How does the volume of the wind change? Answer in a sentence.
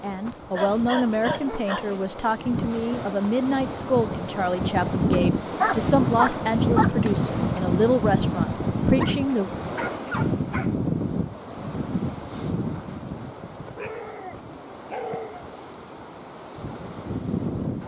The volume of the wind goes up, then down.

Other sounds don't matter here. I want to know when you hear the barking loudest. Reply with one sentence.
The volume of the barking peaks at 6 seconds.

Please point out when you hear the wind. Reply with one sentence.
You can hear the wind from 0.0 to 17.8 s.